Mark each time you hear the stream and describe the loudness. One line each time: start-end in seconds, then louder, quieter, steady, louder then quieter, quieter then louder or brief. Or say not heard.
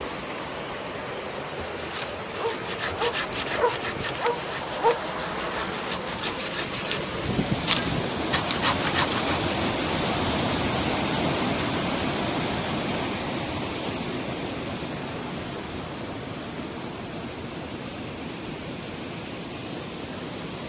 0.0-20.6 louder then quieter.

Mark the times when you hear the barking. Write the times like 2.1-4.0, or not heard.
2.4-5.0.